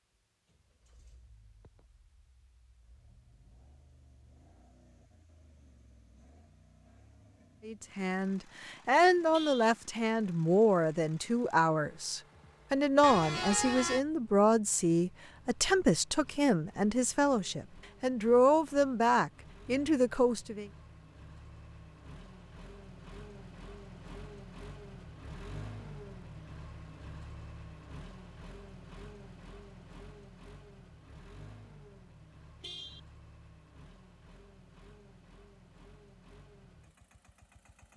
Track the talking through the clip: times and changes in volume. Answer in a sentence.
The talking can be heard from 7.7 to 20.7 s, at a steady volume.